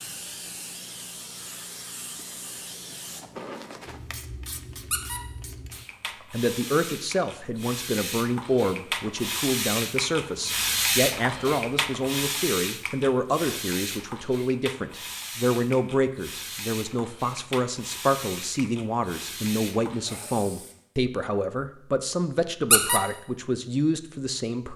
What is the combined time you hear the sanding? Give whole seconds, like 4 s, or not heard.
not heard.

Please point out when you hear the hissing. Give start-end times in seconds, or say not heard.
0.0-20.8.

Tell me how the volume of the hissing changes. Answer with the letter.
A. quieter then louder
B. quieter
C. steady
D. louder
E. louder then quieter
E.